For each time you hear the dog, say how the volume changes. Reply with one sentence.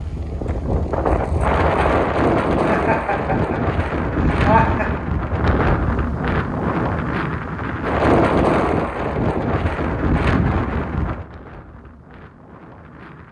You can't hear the dog here.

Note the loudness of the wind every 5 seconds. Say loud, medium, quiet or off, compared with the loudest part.
loud, loud, medium.